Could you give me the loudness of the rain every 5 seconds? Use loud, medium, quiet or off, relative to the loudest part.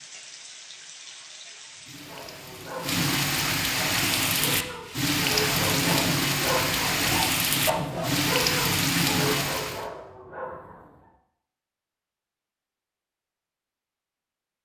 medium, loud, off.